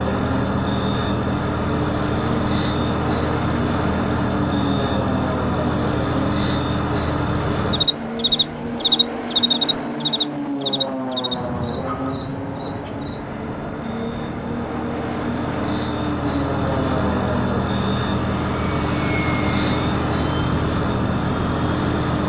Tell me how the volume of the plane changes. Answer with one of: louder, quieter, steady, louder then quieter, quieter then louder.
steady.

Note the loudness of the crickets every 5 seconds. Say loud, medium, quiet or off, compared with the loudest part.
loud, loud, medium, loud, loud.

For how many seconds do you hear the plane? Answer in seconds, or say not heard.
22 s.